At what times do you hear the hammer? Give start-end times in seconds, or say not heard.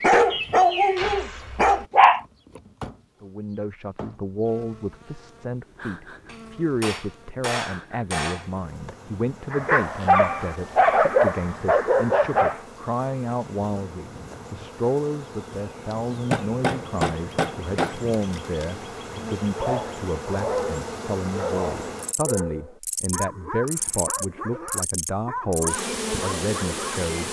6.2-8.5, 16.1-17.9.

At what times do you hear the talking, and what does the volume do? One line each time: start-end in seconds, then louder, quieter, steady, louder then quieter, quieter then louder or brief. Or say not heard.
3.2-27.2 steady.